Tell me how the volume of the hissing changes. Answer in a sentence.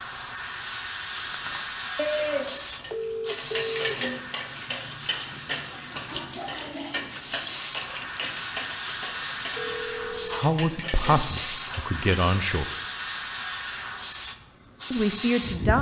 The volume of the hissing goes down, then up.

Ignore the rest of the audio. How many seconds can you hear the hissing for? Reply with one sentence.
The hissing can be heard for 16 seconds in total.